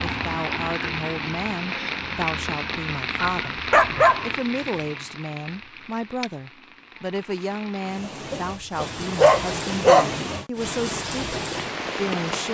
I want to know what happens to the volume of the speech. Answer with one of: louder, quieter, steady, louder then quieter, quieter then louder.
steady.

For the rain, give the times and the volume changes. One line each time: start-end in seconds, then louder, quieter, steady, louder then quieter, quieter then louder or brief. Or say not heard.
0.0-12.4 quieter then louder.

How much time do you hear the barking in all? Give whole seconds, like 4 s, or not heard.
3 s.